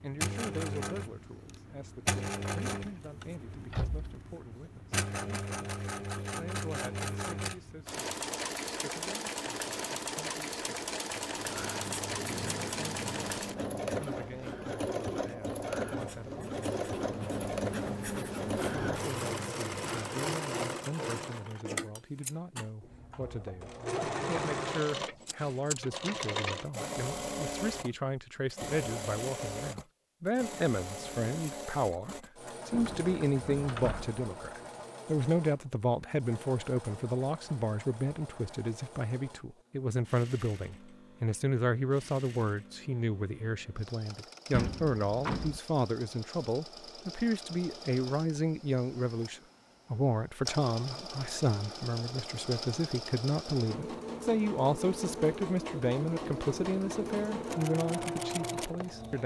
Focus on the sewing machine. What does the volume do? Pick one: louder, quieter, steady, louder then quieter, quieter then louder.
quieter then louder.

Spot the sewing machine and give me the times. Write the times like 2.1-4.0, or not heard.
0.0-59.2.